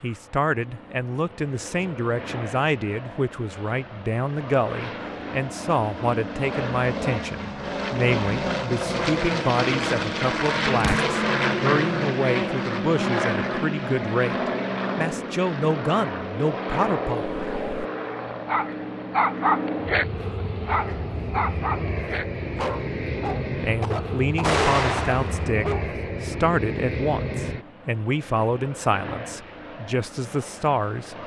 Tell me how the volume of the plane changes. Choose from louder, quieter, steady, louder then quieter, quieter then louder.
louder then quieter.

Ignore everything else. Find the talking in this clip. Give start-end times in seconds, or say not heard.
0.0-17.7, 23.6-31.2.